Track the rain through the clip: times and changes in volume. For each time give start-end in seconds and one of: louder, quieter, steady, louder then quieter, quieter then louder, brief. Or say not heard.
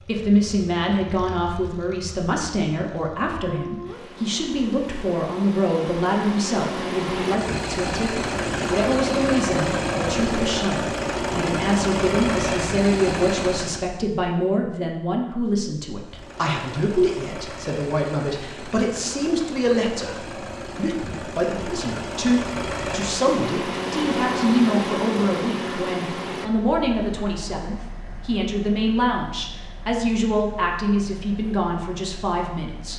not heard.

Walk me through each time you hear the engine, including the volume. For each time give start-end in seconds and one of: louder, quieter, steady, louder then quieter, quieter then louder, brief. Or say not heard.
0.0-13.9 louder
16.0-32.9 louder then quieter.